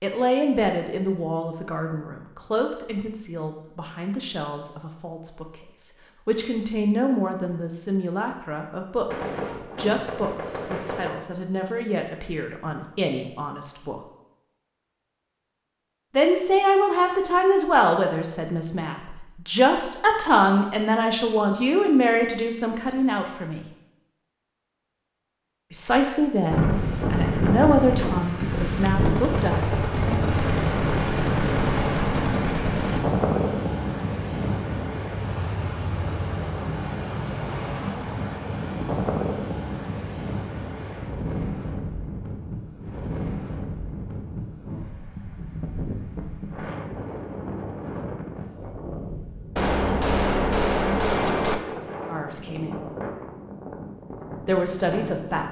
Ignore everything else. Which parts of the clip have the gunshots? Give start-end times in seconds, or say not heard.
9.1-11.1, 29.0-33.0, 49.5-51.5.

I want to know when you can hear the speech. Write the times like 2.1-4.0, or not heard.
0.0-13.9, 16.1-23.6, 25.7-30.2, 52.0-52.8, 54.4-55.4.